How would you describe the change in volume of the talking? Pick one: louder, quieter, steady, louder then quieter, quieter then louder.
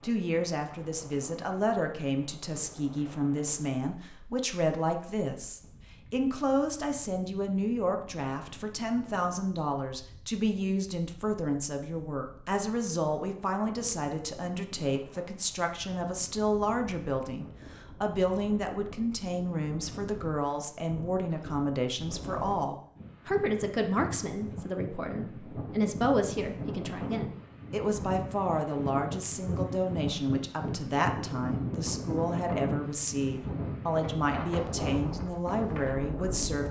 steady.